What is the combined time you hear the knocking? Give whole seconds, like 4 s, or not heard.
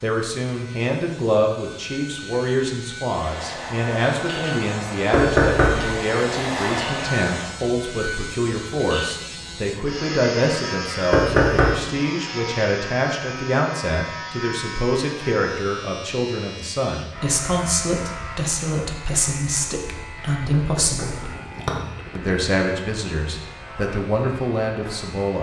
3 s.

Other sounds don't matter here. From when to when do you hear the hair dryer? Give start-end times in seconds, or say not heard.
3.1-7.6.